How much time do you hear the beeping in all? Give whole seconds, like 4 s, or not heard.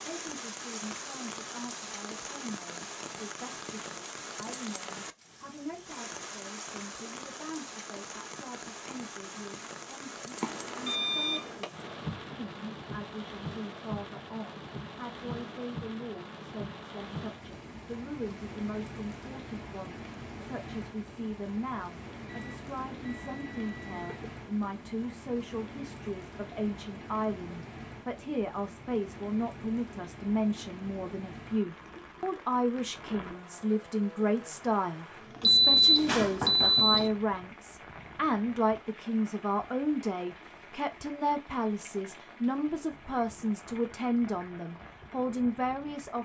5 s.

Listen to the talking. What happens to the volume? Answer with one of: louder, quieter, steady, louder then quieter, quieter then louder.
louder.